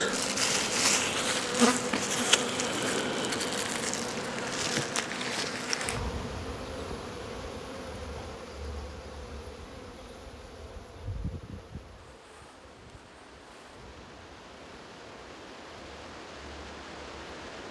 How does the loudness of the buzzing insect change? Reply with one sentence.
The volume of the buzzing insect goes down.